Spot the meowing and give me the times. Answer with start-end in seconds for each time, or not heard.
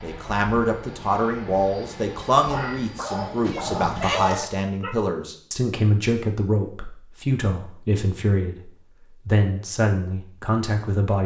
3.5-4.5.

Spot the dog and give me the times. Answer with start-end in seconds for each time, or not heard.
2.5-5.0.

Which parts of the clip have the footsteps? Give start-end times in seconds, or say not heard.
not heard.